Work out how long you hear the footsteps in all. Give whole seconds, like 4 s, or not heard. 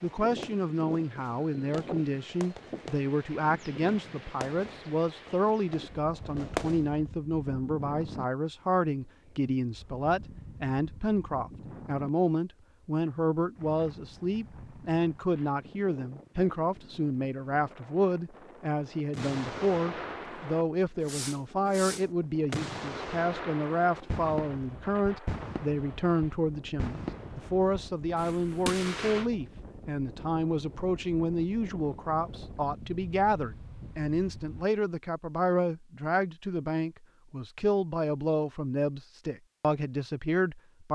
not heard.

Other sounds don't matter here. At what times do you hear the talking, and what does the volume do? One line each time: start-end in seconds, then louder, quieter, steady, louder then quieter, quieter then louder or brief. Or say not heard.
0.0-40.9 steady.